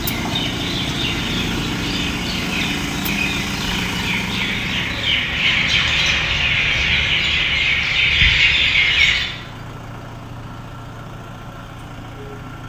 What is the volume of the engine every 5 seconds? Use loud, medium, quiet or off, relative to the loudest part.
loud, medium, medium.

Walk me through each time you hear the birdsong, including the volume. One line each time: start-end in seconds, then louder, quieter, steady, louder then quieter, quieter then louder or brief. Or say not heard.
0.0-9.2 louder.